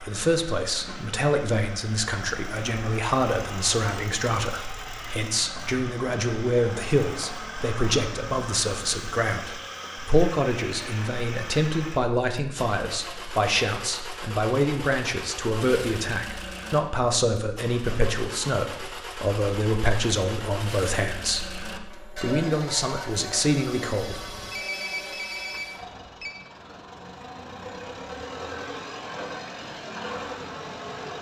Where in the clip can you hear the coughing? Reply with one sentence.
You can't hear the coughing here.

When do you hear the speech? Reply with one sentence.
The speech can be heard from 0.0 to 24.2 s.